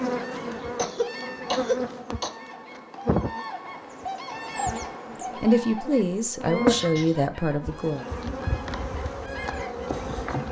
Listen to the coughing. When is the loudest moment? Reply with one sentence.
The volume of the coughing peaks at 2 seconds.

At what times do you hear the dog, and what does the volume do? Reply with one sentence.
The dog can't be heard in this clip.